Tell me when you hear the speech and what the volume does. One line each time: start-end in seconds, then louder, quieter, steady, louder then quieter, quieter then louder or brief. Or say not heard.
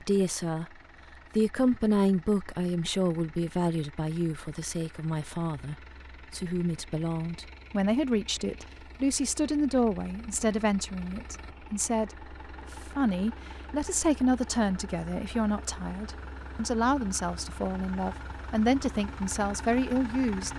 0.0-0.7 brief
1.4-20.5 steady.